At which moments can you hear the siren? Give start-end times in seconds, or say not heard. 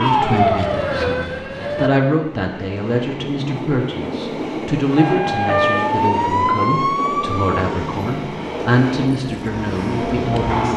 0.0-1.9, 5.0-10.7.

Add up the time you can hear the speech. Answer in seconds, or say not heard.
11 s.